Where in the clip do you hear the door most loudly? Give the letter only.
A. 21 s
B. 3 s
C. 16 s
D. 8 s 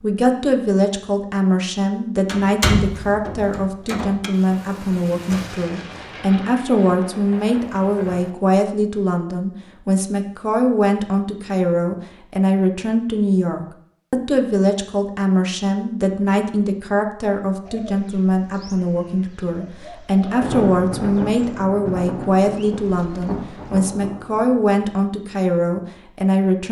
B.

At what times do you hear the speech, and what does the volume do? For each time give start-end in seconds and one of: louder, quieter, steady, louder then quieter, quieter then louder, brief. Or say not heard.
0.0-26.6 steady.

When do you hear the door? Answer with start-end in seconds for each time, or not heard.
2.2-4.3.